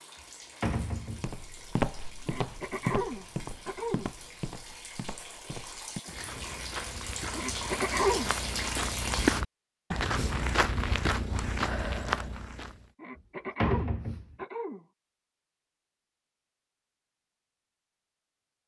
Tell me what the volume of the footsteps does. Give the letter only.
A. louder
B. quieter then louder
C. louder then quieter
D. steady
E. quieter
B.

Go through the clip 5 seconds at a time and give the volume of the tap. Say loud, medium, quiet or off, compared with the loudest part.
quiet, loud, off, off.